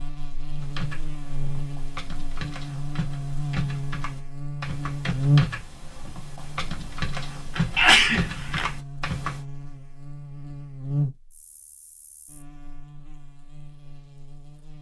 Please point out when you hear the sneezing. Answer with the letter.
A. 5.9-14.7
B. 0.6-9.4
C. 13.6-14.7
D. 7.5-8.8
D.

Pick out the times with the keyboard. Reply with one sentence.
You can hear the keyboard from 0.6 to 9.4 s.